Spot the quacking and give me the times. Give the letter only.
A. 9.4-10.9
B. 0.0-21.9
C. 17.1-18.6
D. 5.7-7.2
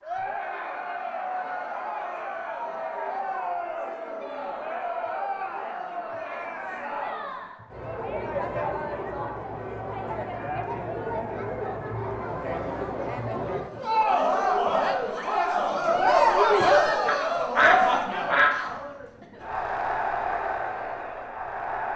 C.